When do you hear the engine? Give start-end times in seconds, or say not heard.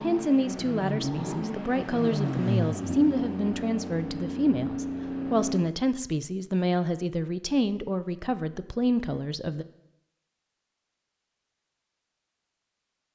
0.0-5.6.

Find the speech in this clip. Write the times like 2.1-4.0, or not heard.
0.0-9.7.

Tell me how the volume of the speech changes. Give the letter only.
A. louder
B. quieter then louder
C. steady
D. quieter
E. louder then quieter
C.